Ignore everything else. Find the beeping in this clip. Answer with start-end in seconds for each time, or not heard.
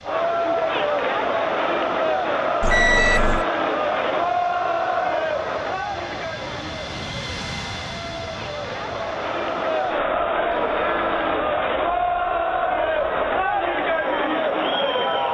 2.6-3.5, 10.5-11.3.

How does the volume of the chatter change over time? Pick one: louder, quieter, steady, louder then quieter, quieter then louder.
quieter then louder.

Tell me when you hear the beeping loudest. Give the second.
3 s.